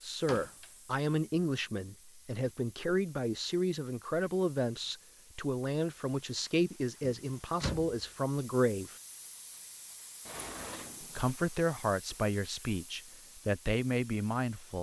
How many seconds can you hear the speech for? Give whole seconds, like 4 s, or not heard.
13 s.